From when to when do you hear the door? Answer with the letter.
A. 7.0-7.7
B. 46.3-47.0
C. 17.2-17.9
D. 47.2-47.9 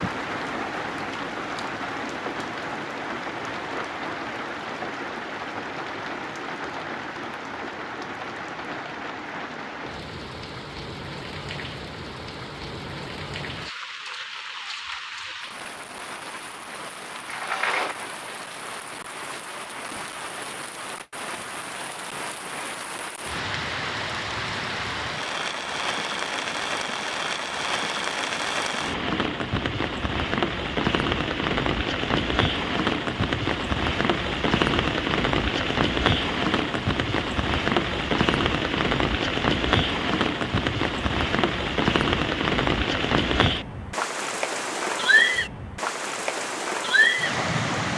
C.